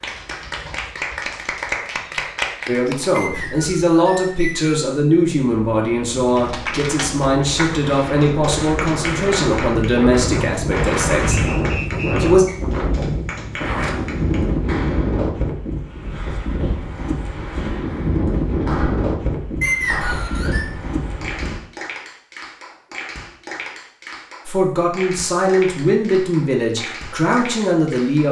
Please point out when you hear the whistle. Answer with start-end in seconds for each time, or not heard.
3.1-5.0, 11.3-12.6, 19.6-20.6.